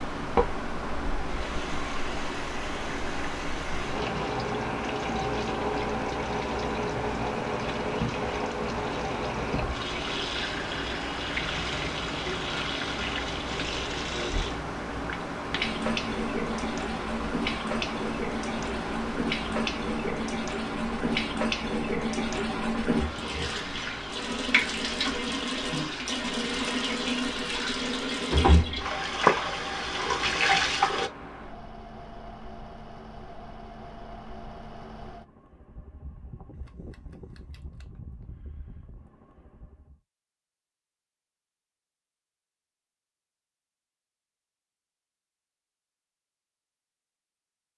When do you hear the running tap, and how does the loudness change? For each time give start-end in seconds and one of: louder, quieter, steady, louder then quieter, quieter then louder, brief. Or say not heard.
0.1-31.1 louder.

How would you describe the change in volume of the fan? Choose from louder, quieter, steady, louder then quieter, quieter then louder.
quieter.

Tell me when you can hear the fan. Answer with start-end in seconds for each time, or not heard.
0.0-40.0.